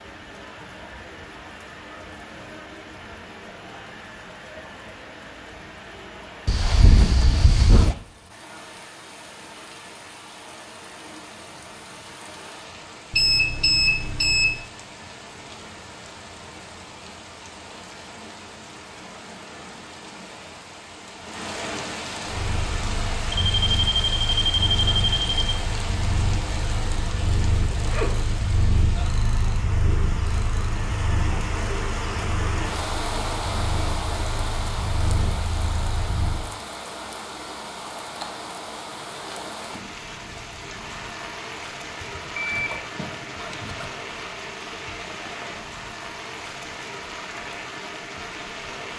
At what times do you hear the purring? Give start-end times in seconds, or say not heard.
22.2-36.5.